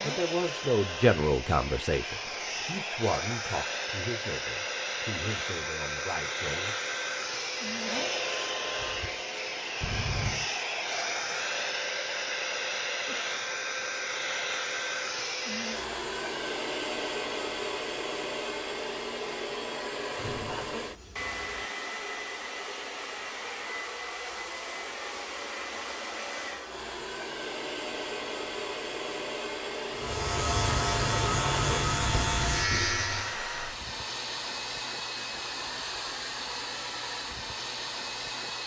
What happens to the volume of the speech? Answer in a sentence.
The loudness of the speech goes down.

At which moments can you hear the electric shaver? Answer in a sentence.
The electric shaver can be heard from 29.9 to 33.4 s.